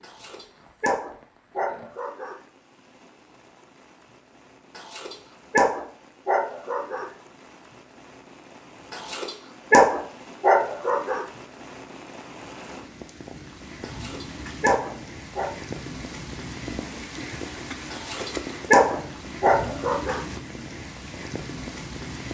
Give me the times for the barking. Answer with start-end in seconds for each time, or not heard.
0.0-2.4, 4.8-7.0, 8.9-11.2, 13.8-15.5, 17.9-20.2.